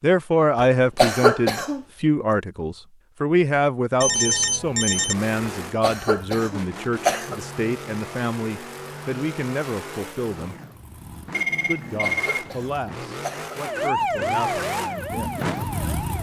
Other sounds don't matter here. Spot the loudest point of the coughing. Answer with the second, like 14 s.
1 s.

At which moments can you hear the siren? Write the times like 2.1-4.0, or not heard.
13.6-16.1.